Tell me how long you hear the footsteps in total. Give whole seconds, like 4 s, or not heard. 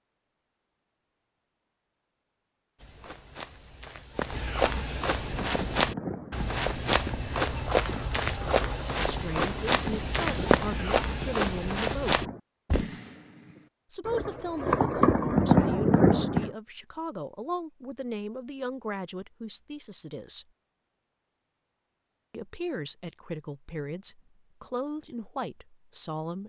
10 s.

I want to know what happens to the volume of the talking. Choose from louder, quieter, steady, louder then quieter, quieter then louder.
steady.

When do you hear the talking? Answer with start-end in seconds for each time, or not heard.
8.9-12.2, 13.9-20.4, 22.3-26.4.